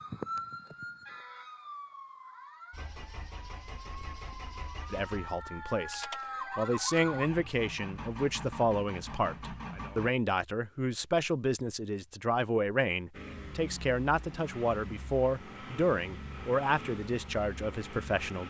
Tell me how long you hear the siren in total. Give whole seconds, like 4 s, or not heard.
7 s.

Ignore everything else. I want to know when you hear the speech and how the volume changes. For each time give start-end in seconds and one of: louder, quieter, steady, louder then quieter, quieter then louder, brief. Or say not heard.
4.9-18.4 steady.